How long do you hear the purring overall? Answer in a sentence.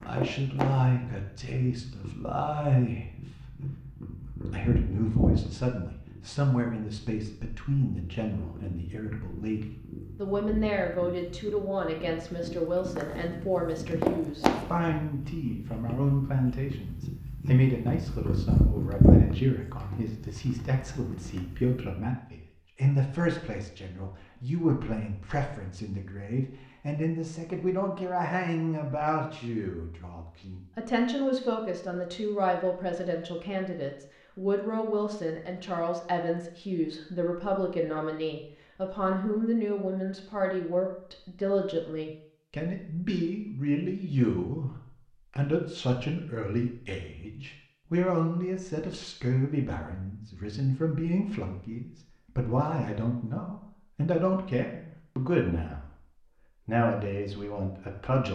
You can hear the purring for 22 seconds altogether.